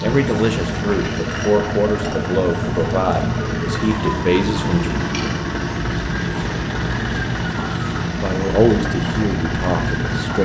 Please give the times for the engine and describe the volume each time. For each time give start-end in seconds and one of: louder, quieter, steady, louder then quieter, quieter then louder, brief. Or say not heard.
0.0-10.4 steady.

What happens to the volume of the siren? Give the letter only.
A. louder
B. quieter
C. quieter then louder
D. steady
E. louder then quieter
D.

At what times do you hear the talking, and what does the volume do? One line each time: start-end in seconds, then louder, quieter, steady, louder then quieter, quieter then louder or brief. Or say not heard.
0.0-4.9 steady
8.2-10.4 brief.